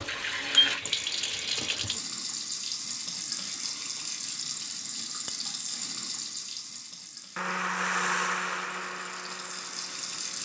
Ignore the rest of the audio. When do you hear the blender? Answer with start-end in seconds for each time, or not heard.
7.3-10.4.